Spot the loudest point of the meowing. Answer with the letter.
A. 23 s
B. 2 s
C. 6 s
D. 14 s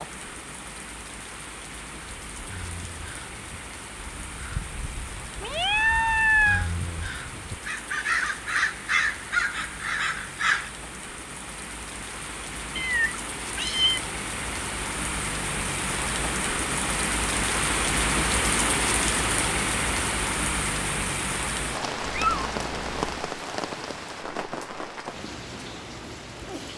C.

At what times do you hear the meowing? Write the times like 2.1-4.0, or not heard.
5.4-6.7, 12.8-14.0, 22.1-23.2.